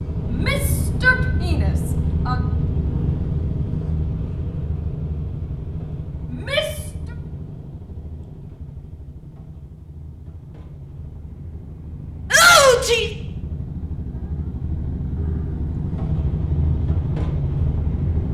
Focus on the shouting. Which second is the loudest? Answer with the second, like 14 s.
13 s.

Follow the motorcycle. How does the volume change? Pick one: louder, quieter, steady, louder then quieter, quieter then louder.
quieter then louder.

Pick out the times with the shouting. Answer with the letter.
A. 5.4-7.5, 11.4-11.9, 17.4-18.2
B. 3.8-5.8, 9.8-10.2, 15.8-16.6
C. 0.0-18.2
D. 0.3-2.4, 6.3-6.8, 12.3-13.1
D.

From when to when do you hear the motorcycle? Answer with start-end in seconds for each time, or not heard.
0.0-18.2.